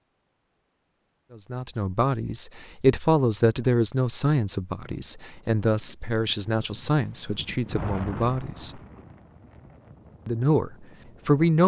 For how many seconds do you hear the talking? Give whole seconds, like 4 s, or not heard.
9 s.